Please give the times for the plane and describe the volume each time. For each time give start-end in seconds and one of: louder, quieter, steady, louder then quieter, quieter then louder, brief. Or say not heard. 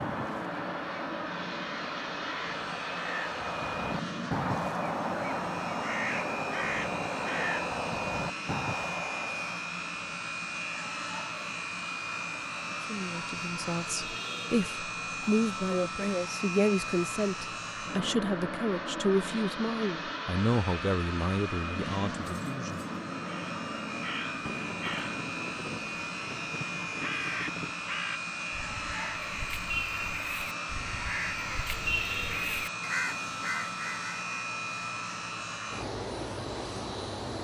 0.0-37.3 steady.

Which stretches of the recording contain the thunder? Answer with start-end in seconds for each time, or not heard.
24.4-27.7.